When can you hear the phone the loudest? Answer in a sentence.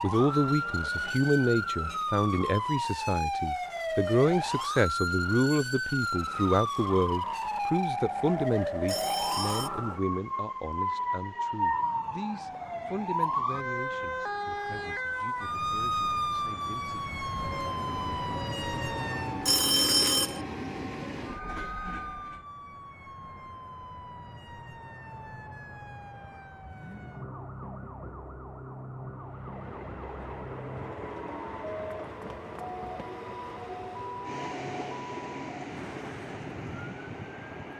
The loudest moment of the phone is at 20 seconds.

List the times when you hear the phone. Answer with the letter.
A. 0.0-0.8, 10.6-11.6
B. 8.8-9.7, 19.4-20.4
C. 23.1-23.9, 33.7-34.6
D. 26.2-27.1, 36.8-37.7
B.